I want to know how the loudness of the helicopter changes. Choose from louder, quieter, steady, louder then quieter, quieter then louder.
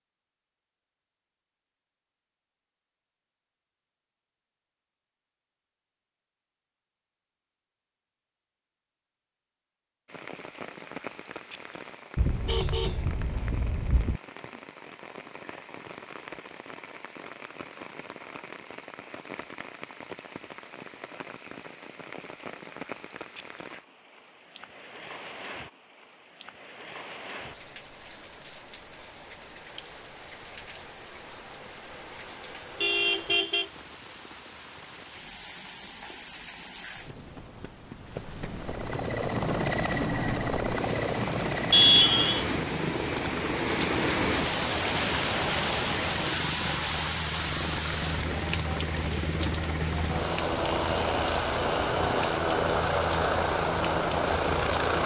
quieter then louder.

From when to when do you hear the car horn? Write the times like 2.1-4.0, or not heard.
12.2-14.2, 32.8-33.6, 41.7-42.5.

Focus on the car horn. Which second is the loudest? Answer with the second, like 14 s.
42 s.